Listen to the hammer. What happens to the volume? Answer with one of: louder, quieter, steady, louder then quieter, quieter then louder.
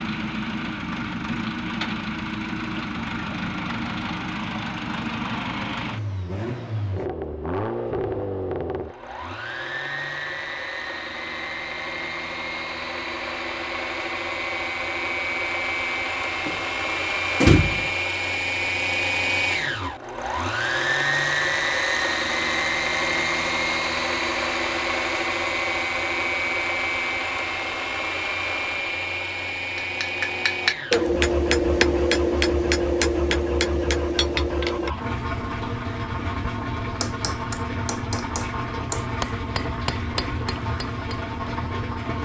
quieter.